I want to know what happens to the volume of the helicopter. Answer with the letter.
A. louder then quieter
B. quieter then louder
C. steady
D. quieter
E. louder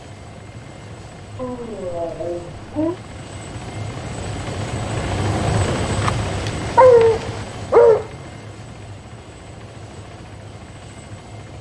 A.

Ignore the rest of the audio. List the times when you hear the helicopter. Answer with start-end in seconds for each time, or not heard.
0.0-11.5.